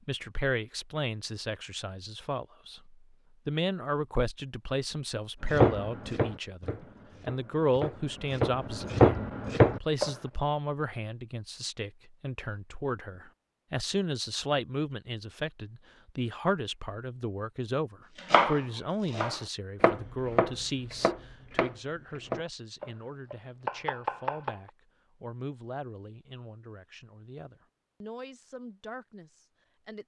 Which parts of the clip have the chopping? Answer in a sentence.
The chopping can be heard from 5.5 to 10.1 s and from 18.1 to 24.7 s.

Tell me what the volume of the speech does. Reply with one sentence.
The loudness of the speech goes down.